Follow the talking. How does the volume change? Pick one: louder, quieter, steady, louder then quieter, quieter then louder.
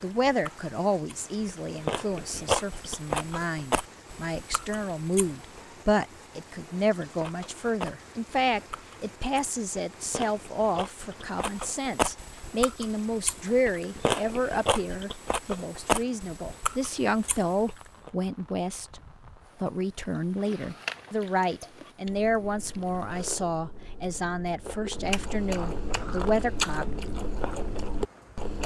steady.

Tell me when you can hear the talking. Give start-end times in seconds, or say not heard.
0.0-19.0, 19.6-27.1.